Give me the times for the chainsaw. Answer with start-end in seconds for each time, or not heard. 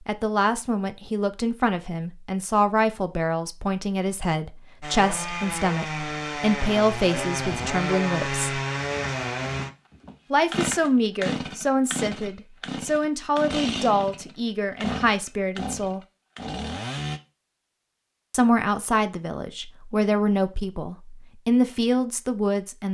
4.8-17.2.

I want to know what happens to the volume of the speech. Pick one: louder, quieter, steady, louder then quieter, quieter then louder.
steady.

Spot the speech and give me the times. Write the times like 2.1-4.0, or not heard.
0.1-8.6, 10.3-16.0, 18.3-22.9.